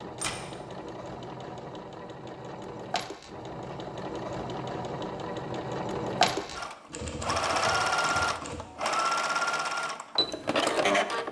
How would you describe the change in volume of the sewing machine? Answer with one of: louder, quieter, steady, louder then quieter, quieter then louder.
louder.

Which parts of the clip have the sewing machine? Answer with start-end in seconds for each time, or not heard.
0.0-11.2.